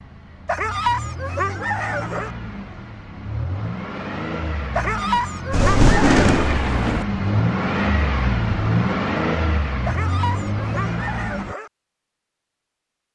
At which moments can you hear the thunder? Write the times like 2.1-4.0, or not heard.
5.5-7.0.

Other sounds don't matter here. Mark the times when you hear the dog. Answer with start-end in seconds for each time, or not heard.
0.5-2.3, 4.8-6.2, 9.8-11.7.